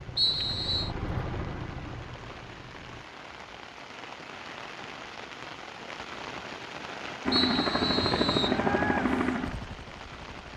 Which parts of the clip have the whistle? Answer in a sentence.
The whistle can be heard from 0.1 to 0.9 s and from 7.3 to 8.6 s.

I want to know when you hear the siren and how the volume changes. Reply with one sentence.
The siren can't be heard in this clip.